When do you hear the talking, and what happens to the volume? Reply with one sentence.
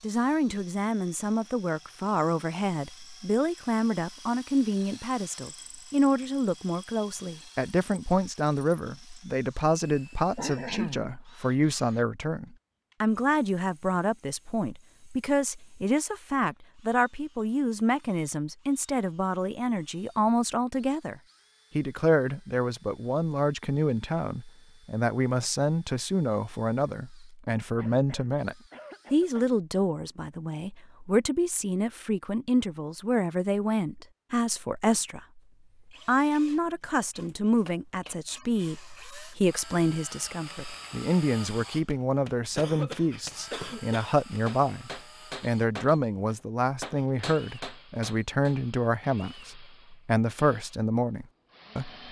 You can hear the talking from 0.0 to 35.4 s, at a steady volume; and from 36.0 to 51.9 s, at a steady volume.